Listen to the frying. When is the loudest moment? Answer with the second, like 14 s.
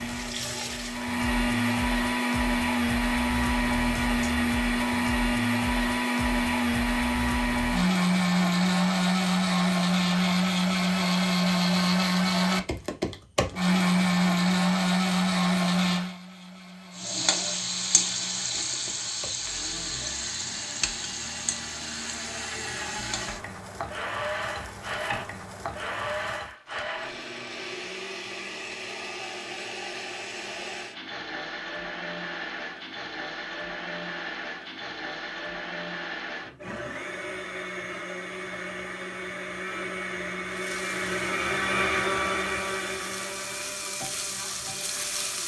18 s.